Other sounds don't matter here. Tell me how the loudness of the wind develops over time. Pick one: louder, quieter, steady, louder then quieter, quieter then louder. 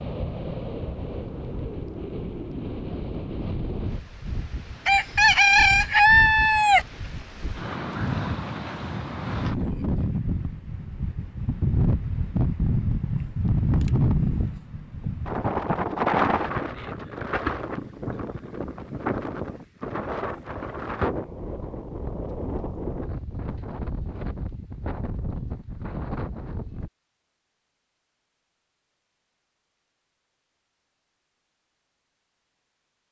louder then quieter.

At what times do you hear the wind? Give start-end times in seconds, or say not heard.
0.0-26.9.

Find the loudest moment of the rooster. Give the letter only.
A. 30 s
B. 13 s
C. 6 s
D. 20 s
C.